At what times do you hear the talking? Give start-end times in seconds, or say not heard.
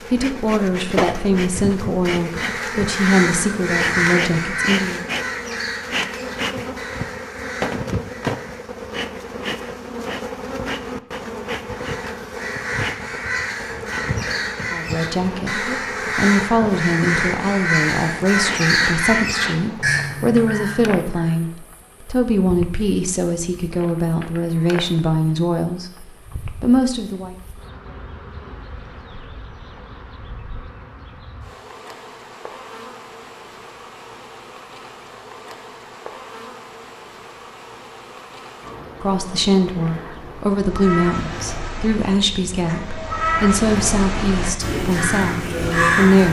0.1-5.0, 14.7-25.9, 26.6-27.4, 39.0-46.2.